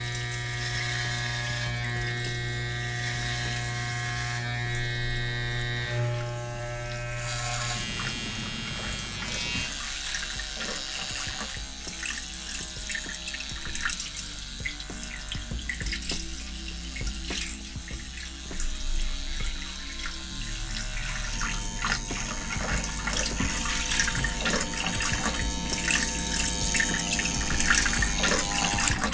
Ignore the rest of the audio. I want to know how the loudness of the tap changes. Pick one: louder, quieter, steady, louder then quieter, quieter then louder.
louder.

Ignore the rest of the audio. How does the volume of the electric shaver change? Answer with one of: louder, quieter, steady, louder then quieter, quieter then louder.
quieter then louder.